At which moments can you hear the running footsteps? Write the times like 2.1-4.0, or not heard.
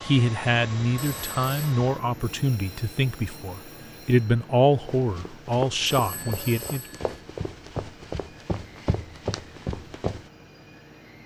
4.8-10.3.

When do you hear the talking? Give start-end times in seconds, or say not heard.
0.0-6.8.